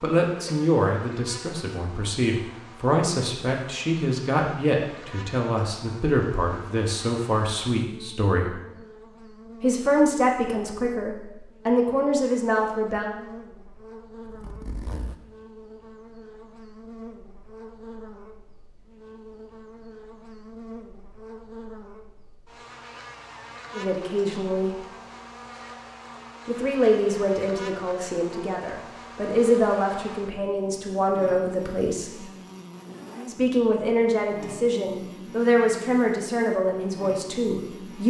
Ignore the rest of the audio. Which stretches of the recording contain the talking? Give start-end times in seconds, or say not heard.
0.0-8.6, 9.6-13.1, 23.8-24.8, 26.4-32.2, 33.2-38.0.